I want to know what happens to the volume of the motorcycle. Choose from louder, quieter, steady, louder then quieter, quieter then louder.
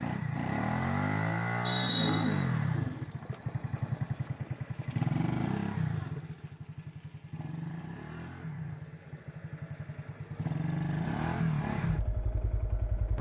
quieter then louder.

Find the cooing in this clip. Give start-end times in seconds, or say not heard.
1.6-3.0.